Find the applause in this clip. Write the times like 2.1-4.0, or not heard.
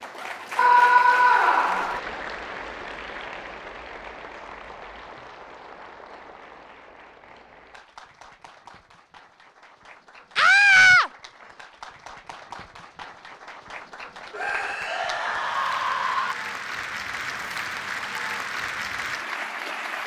0.0-20.0.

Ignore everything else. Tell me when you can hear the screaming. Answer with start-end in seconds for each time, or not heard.
0.6-2.0, 10.3-11.1, 14.3-16.4.